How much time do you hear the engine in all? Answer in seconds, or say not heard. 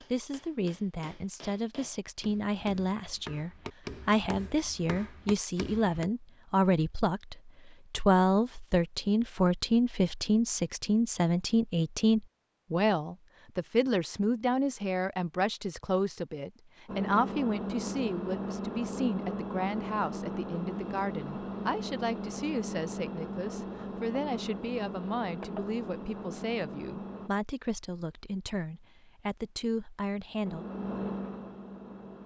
12 s.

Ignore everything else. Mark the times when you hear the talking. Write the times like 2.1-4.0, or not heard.
0.0-30.6.